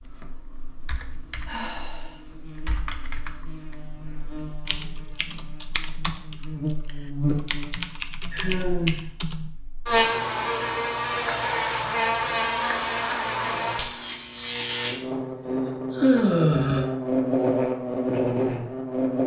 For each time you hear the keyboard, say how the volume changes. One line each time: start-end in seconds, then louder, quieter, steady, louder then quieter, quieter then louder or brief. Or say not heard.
0.0-9.5 louder.